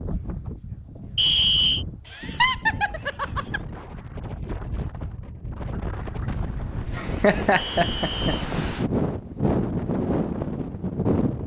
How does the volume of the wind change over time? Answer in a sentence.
The loudness of the wind goes up.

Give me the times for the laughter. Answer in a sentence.
The laughter can be heard from 2.0 to 3.6 s and from 7.0 to 8.3 s.